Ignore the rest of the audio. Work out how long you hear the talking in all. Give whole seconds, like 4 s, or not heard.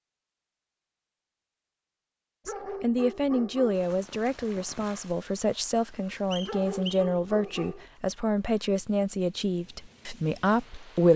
9 s.